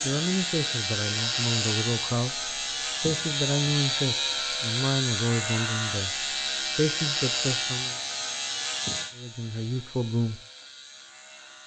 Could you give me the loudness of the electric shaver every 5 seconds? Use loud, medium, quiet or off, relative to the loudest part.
loud, loud, quiet.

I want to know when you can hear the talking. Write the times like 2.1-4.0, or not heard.
0.0-8.0, 9.2-10.4.